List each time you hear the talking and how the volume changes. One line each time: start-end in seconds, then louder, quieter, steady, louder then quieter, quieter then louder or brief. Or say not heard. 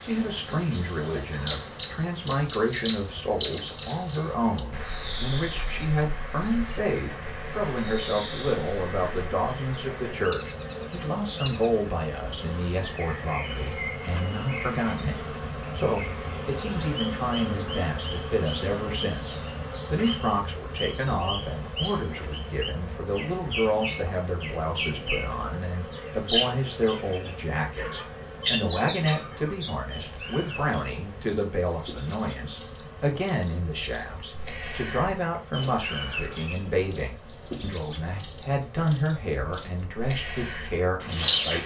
0.0-41.6 steady.